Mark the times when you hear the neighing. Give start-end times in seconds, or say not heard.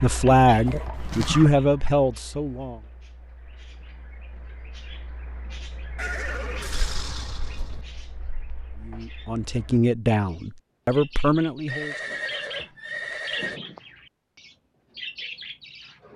0.5-1.5, 6.0-7.8, 11.7-13.6.